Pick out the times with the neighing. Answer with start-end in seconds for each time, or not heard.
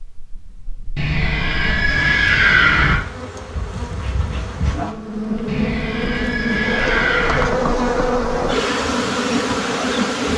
0.9-3.0, 5.5-7.5.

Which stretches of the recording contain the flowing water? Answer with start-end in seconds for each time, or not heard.
not heard.